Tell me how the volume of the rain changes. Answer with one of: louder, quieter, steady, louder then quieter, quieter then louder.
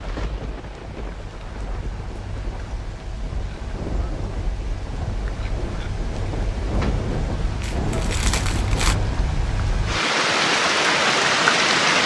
louder.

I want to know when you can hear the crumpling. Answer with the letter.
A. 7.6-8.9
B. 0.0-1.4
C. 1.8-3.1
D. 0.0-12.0
A.